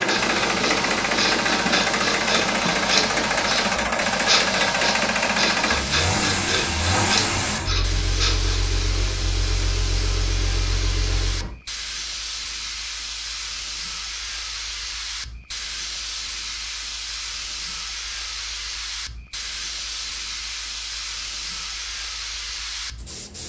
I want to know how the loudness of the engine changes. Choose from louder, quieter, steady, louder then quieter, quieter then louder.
quieter.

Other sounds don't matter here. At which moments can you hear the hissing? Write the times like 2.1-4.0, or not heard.
0.2-23.4.